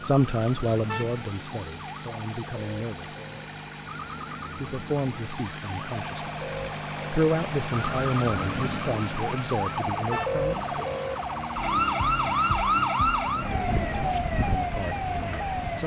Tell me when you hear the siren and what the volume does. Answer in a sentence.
You can hear the siren from 0.0 to 15.8 s, getting louder.